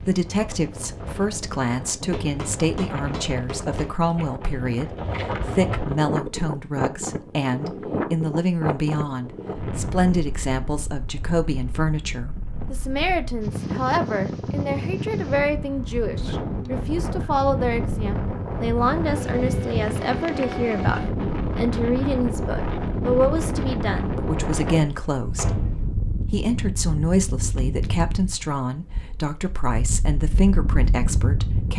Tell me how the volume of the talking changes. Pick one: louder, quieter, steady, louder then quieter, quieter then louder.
steady.